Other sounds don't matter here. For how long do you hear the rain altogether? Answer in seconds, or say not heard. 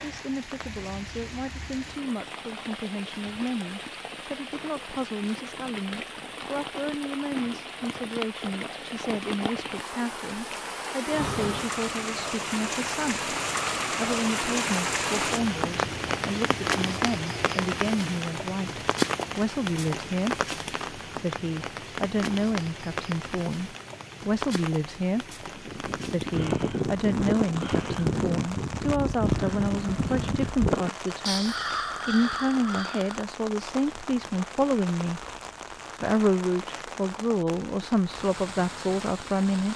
40 s.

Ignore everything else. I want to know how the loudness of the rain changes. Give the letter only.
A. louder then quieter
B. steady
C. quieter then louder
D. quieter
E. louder
A.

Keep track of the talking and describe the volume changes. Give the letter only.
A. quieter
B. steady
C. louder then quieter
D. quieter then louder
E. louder
E.